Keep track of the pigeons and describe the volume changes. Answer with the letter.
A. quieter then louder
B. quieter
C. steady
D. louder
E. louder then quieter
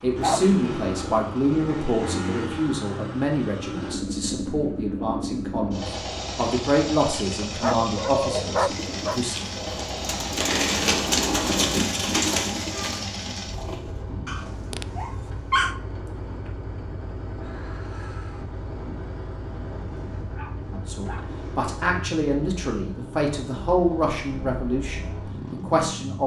E.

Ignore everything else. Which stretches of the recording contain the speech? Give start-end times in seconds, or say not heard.
0.0-9.3, 20.7-26.2.